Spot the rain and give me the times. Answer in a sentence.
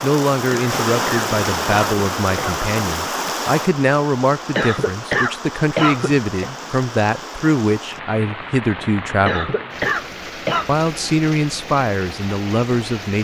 You can hear the rain from 0.0 to 13.2 s.